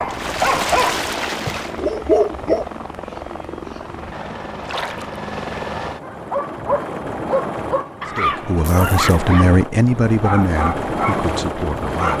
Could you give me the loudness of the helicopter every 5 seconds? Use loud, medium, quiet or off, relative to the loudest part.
medium, loud, loud.